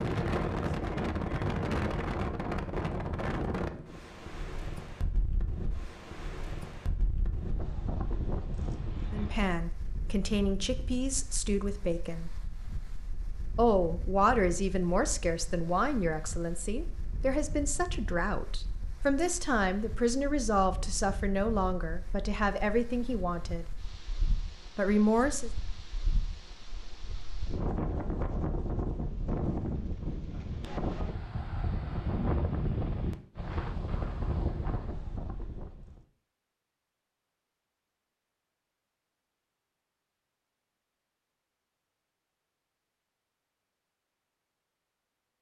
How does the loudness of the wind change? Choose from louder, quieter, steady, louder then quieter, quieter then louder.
quieter then louder.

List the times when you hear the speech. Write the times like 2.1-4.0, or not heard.
9.1-12.3, 13.6-23.6, 24.8-25.5.